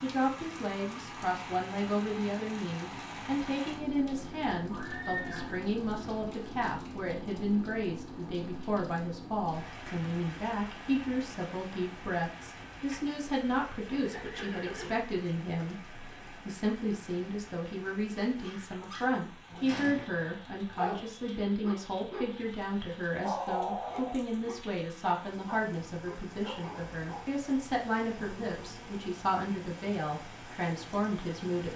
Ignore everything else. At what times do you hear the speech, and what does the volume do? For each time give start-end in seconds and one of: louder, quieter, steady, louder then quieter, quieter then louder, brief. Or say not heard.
0.0-31.7 steady.